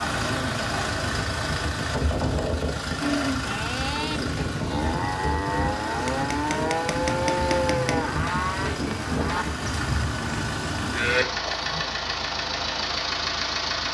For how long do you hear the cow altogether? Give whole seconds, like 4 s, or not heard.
9 s.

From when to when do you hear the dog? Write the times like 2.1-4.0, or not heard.
not heard.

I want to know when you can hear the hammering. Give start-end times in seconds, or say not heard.
6.0-8.1.